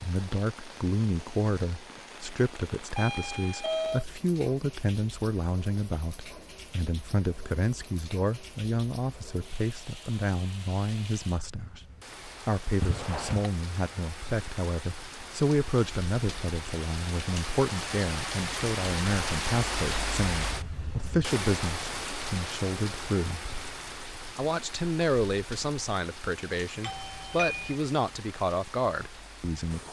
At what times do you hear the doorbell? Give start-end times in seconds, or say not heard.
2.9-4.0, 12.8-13.5, 26.8-27.8.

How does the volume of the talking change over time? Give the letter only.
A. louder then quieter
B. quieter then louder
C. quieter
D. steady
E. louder
D.